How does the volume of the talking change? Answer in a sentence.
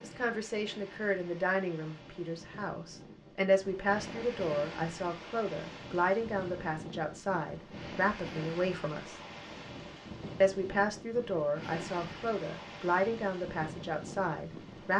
The loudness of the talking stays about the same.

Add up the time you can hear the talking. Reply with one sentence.
The talking can be heard for 14 seconds in total.